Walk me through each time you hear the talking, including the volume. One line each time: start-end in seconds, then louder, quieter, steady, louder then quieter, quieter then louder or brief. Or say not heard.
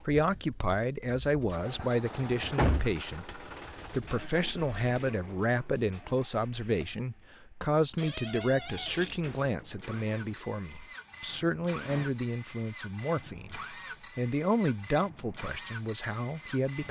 0.0-16.8 steady.